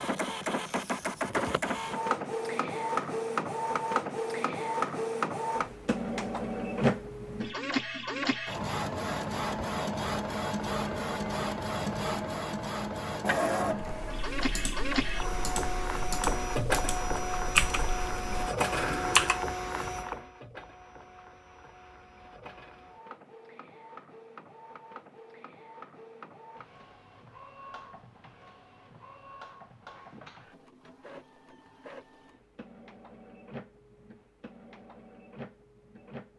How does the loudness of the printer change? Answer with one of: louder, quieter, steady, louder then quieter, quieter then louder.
quieter.